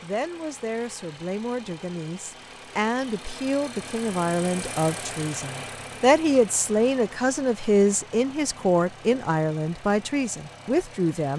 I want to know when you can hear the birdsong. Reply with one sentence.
The birdsong can't be heard in this clip.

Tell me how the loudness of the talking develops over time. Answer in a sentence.
The volume of the talking goes up.